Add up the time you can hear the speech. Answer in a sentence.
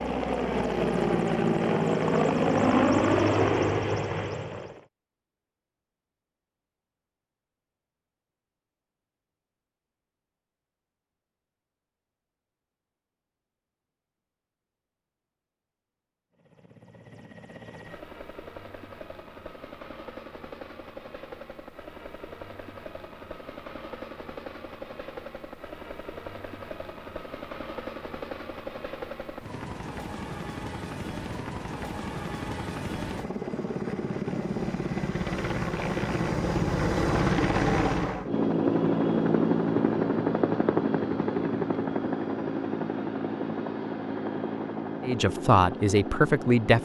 The speech can be heard for 2 seconds in total.